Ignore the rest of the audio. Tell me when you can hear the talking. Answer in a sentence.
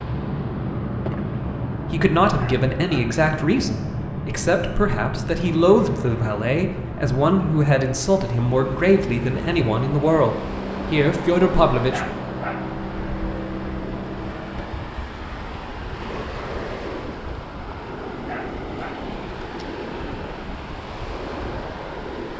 You can hear the talking from 1.9 to 12.2 s.